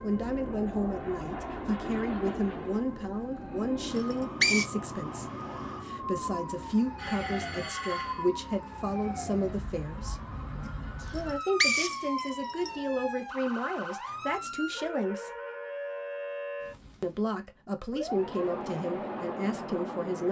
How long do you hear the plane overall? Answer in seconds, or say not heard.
9 s.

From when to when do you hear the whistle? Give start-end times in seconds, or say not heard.
4.0-4.7, 11.2-12.7.